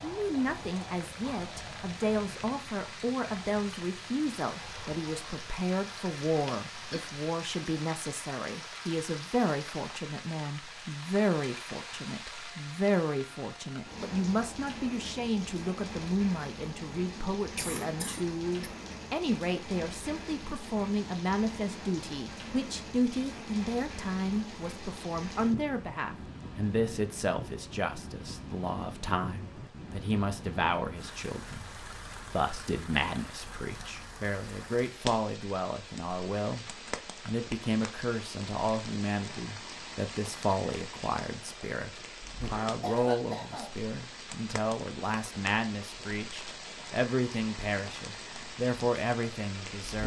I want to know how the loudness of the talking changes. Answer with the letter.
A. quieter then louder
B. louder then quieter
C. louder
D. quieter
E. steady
E.